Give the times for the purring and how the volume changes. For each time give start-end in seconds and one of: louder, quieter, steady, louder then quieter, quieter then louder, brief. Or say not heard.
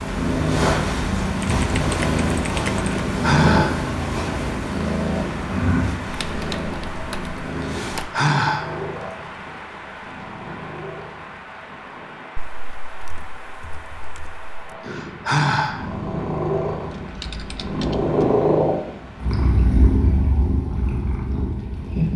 0.0-12.3 quieter
14.6-22.1 louder then quieter.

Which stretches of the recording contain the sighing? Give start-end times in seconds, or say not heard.
3.0-3.9, 7.7-8.8, 14.8-15.8.